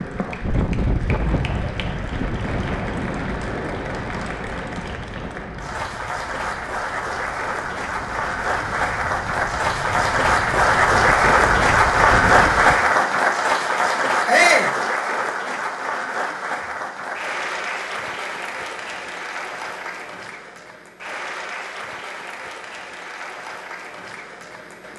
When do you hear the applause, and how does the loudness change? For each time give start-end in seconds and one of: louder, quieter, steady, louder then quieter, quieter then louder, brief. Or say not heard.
0.0-24.9 louder then quieter.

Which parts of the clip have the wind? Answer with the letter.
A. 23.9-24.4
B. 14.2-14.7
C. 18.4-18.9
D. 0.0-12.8
D.